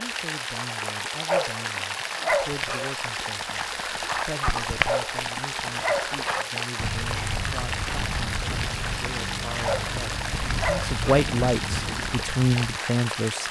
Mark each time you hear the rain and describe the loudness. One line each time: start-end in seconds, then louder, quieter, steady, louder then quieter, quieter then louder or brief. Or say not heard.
0.0-13.4 steady.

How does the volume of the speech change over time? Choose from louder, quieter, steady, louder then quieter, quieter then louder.
louder.